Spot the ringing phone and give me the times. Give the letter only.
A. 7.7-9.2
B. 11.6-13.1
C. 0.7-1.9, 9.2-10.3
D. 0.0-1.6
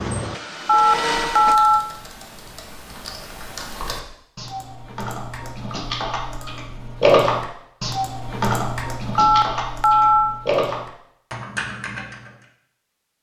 C.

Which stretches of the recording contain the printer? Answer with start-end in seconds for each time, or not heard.
0.0-1.6.